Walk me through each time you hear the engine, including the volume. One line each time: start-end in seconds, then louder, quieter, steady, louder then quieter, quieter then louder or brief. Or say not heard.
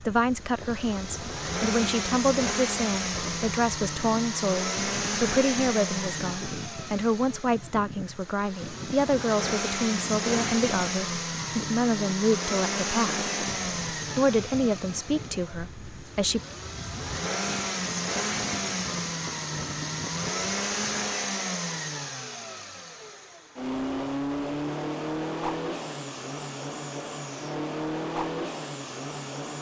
0.0-29.5 steady.